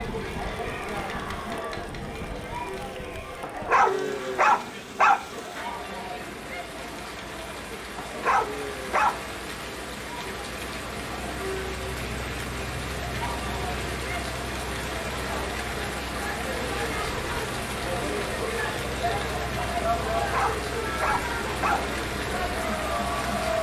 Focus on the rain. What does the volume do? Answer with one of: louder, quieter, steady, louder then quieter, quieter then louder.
louder.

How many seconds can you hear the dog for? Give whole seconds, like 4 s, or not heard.
5 s.